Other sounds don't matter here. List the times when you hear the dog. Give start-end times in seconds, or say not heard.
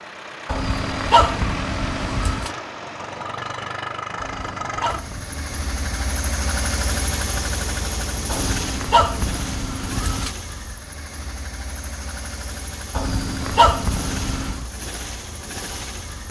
0.5-2.5, 4.2-6.1, 8.3-10.3, 12.9-14.7.